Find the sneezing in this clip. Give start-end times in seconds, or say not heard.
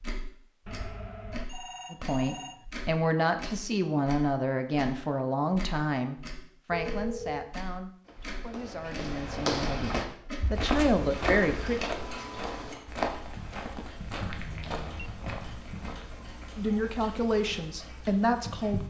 not heard.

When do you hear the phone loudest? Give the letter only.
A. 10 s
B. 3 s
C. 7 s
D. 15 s
C.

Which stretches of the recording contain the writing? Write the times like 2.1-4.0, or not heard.
not heard.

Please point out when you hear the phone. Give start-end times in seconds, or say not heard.
0.7-2.6, 6.7-7.5, 14.4-15.1.